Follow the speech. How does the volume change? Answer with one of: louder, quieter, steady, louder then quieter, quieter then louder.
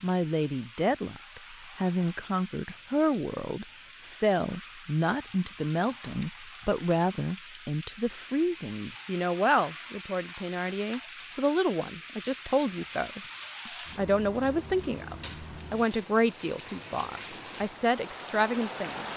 steady.